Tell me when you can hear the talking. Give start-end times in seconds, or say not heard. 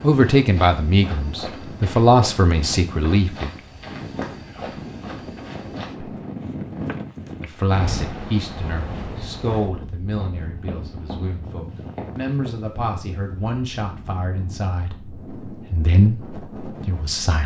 0.0-3.5, 7.4-17.4.